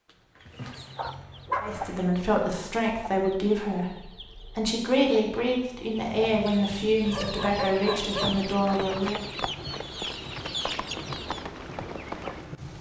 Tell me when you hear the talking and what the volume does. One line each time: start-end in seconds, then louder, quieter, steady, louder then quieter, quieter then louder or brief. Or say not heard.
1.6-9.2 steady.